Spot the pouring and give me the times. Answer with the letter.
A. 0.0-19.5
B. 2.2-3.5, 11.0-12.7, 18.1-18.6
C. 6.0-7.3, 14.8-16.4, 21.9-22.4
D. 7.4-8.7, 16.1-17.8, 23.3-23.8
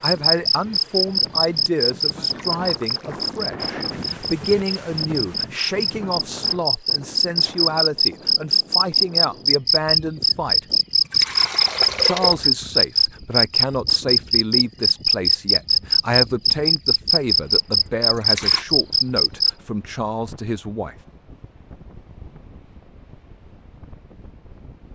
B.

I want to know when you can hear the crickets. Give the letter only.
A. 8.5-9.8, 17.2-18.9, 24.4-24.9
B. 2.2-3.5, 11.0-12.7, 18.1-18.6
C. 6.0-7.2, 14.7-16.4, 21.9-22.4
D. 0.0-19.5
D.